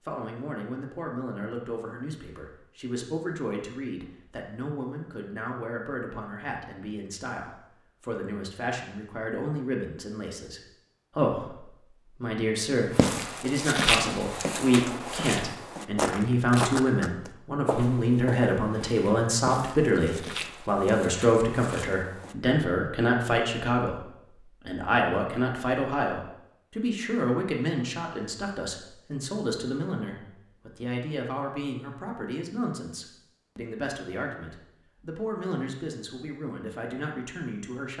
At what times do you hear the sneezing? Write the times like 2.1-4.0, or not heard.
not heard.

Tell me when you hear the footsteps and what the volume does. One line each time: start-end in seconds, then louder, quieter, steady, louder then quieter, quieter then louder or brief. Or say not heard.
12.9-22.4 quieter.